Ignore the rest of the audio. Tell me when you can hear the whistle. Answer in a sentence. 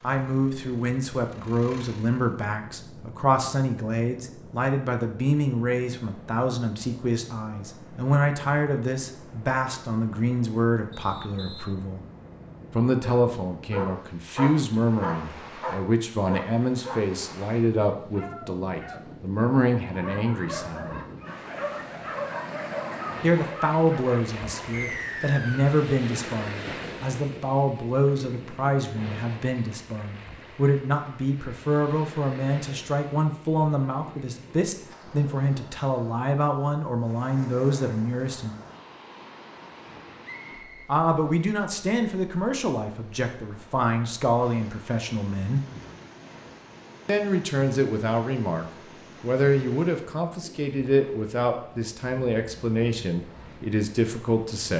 The whistle can be heard from 10.9 to 11.7 s, from 24.7 to 25.7 s and from 40.2 to 40.9 s.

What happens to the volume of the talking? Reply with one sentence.
The volume of the talking stays about the same.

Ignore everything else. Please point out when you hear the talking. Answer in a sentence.
The talking can be heard from 0.0 to 12.0 s, from 12.7 to 21.0 s, from 23.2 to 38.5 s, from 40.9 to 45.6 s and from 47.0 to 54.7 s.